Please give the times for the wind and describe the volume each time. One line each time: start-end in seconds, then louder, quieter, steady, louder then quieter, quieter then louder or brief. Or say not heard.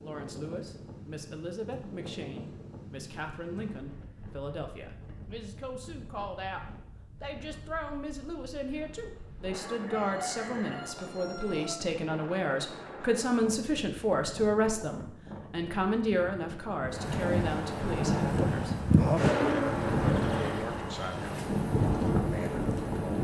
0.0-23.1 quieter then louder.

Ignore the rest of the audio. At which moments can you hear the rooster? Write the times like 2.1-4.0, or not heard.
9.2-11.8.